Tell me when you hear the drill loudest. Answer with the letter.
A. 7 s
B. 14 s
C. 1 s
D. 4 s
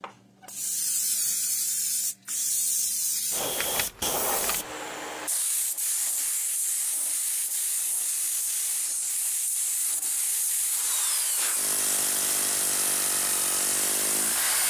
B.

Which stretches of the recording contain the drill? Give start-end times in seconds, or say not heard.
10.7-14.6.